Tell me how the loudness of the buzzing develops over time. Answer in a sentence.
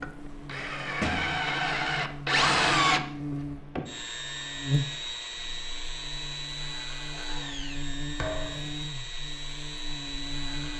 The loudness of the buzzing goes up, then down.